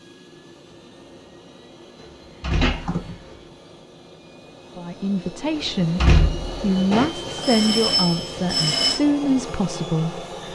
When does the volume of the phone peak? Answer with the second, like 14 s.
9 s.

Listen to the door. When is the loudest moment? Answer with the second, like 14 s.
6 s.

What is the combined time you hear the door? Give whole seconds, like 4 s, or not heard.
3 s.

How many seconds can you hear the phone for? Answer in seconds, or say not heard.
3 s.